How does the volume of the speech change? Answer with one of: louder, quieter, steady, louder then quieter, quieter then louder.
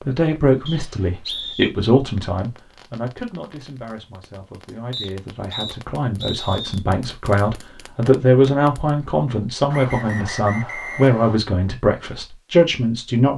quieter then louder.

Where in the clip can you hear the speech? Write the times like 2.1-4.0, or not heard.
0.0-13.3.